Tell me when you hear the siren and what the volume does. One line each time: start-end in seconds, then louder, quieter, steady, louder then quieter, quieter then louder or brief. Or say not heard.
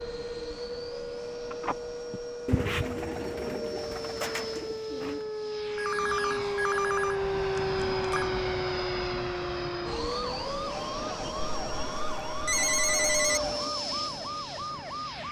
0.0-15.2 louder then quieter.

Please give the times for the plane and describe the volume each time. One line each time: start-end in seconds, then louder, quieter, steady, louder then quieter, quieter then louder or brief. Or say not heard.
0.0-15.2 louder.